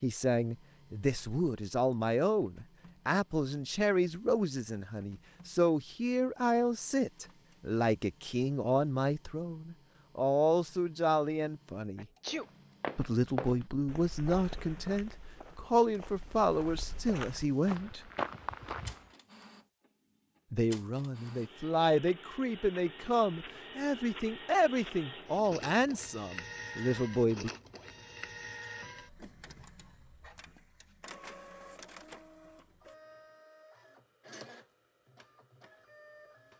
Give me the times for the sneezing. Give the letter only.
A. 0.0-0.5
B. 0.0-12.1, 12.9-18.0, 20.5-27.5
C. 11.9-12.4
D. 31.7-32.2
C.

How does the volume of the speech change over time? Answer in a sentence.
The volume of the speech stays about the same.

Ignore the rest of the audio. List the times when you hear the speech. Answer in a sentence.
You can hear the speech from 0.0 to 12.1 s, from 12.9 to 18.0 s and from 20.5 to 27.5 s.